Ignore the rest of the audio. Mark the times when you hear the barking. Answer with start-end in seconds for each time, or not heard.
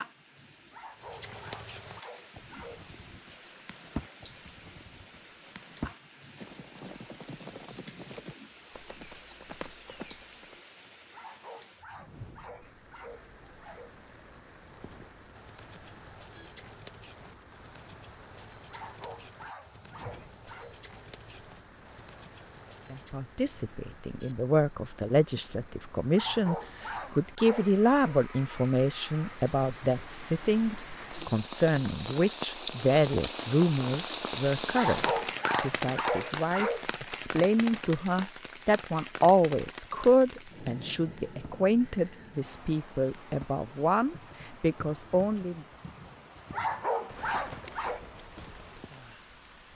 0.7-3.0, 11.1-13.9, 18.6-20.8, 26.1-28.1, 34.7-36.9, 46.5-48.0.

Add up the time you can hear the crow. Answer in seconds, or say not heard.
not heard.